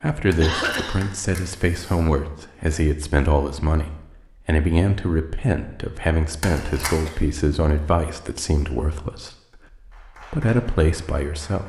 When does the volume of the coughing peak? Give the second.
1 s.